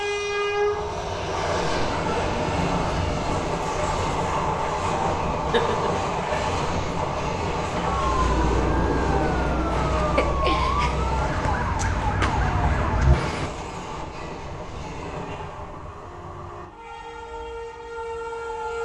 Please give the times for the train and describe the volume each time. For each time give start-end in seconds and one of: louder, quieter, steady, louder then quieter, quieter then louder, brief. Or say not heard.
0.0-18.8 quieter.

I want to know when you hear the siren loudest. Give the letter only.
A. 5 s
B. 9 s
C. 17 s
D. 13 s
D.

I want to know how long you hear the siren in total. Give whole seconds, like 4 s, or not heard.
6 s.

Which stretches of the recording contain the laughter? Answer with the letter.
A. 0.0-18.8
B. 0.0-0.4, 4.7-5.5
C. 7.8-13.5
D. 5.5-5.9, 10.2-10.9
D.